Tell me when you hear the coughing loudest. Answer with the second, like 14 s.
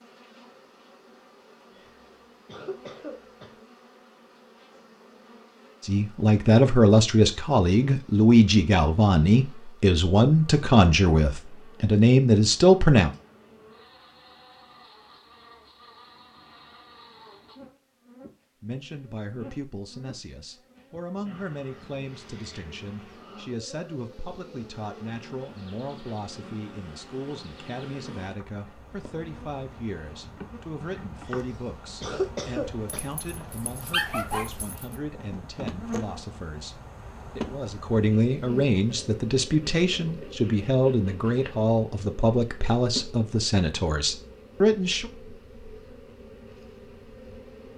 32 s.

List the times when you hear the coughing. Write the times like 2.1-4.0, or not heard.
1.8-3.6, 31.2-33.1.